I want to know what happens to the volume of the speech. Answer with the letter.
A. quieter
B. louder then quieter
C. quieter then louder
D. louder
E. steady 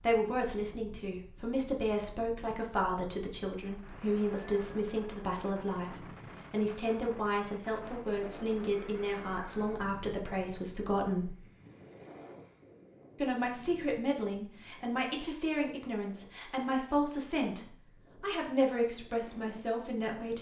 E.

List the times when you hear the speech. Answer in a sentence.
The speech can be heard from 0.0 to 11.3 s and from 13.2 to 20.3 s.